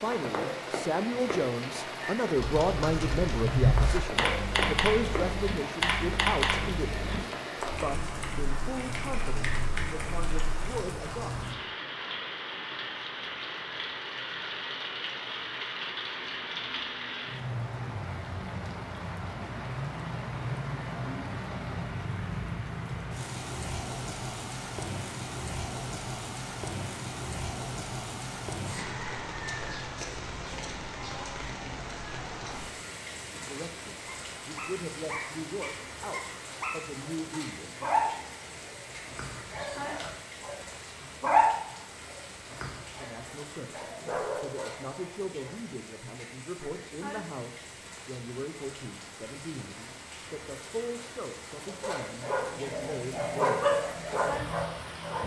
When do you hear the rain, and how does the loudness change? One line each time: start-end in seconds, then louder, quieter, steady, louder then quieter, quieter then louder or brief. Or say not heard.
0.0-55.2 quieter.